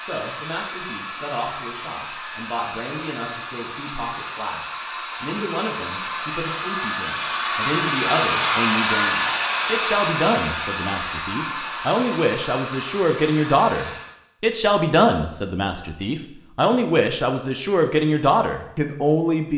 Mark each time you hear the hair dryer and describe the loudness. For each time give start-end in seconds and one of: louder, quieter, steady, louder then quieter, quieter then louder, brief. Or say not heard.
0.0-14.2 louder then quieter.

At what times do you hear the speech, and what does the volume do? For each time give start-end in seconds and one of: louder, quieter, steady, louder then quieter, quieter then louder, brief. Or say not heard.
0.0-19.5 louder.